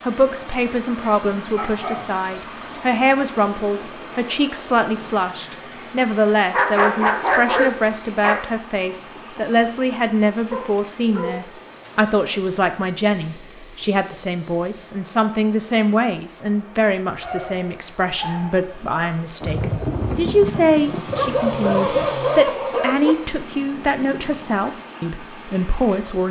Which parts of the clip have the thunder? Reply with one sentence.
The thunder can be heard from 19.4 to 22.1 s.